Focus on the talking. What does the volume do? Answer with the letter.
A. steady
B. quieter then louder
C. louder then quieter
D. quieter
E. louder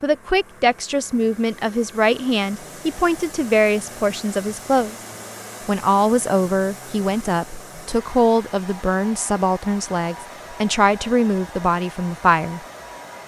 A.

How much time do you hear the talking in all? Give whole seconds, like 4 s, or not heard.
12 s.